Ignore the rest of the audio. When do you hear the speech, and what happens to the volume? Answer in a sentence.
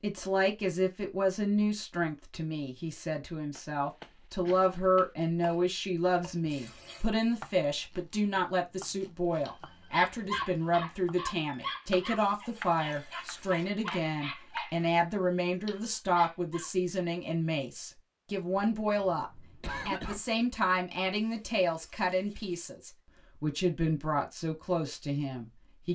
The speech can be heard from 0.0 to 25.8 s, at a steady volume.